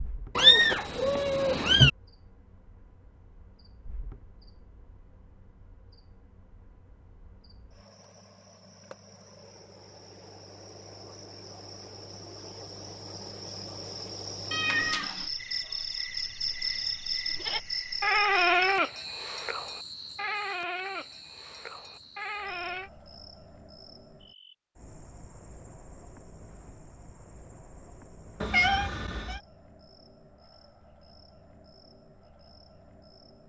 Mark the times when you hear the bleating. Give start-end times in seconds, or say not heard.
17.2-22.9.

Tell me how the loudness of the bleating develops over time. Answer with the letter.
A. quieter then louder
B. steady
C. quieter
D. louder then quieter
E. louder
C.